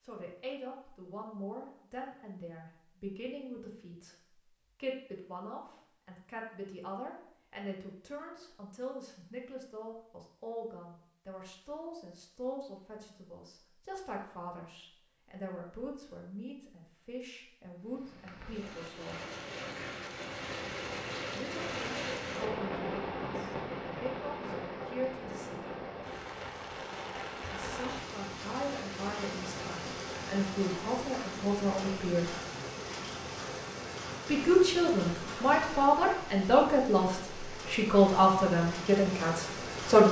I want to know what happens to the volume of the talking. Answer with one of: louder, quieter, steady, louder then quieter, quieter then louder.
louder.